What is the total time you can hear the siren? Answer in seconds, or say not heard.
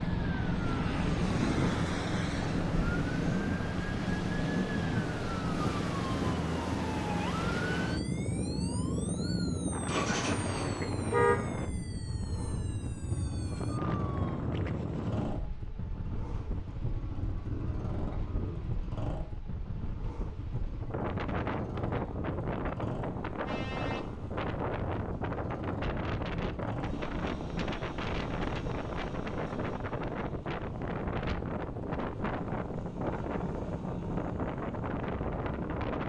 14 s.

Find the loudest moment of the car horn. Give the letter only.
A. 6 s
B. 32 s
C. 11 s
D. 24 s
C.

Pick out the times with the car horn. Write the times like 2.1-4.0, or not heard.
10.1-11.4, 23.2-24.4.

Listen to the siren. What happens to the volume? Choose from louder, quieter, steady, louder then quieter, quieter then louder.
quieter.